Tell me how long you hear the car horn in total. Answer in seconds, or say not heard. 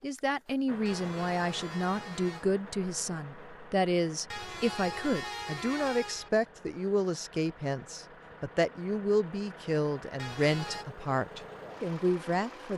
4 s.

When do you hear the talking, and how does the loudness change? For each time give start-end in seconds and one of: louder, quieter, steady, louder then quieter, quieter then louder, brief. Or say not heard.
0.0-12.7 steady.